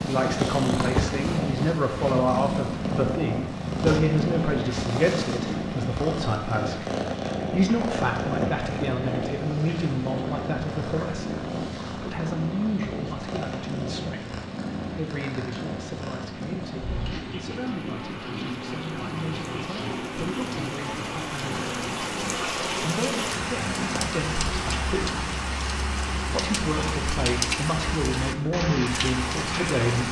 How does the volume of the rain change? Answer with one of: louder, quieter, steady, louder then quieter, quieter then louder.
louder.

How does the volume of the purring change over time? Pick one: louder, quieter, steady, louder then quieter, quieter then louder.
quieter.